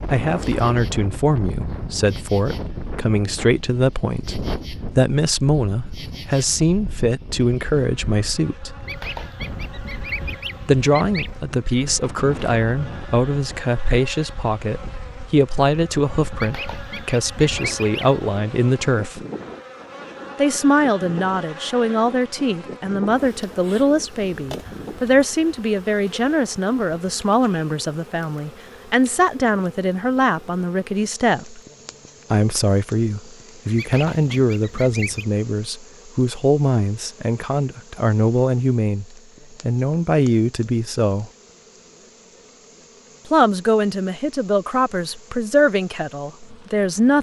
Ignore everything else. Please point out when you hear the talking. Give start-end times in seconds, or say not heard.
0.1-8.7, 10.7-19.2, 20.4-31.6, 32.3-41.3, 43.2-47.1.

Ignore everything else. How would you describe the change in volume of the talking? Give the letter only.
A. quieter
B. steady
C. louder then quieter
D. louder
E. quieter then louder
B.